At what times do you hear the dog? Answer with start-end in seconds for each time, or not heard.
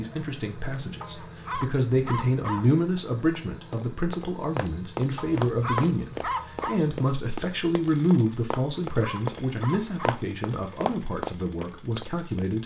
1.0-2.7, 5.2-6.8, 8.6-10.2.